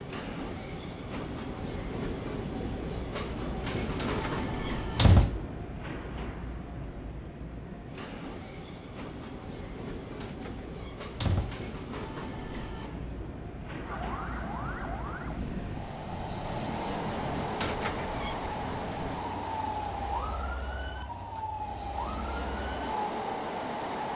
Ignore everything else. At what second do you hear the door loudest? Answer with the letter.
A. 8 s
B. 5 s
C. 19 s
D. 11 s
B.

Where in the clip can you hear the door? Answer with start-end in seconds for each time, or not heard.
4.0-5.5, 10.2-11.7, 17.6-18.4.